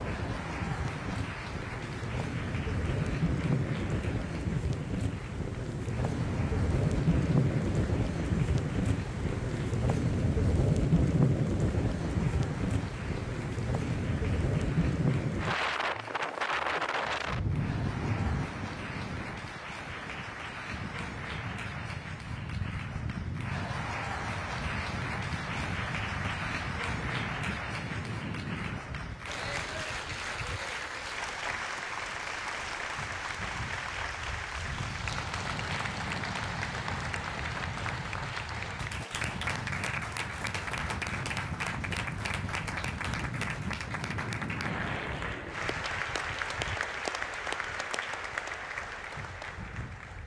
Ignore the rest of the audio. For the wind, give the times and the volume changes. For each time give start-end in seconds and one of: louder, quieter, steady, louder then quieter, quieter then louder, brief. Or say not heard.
0.0-50.2 quieter.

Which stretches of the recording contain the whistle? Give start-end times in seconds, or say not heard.
not heard.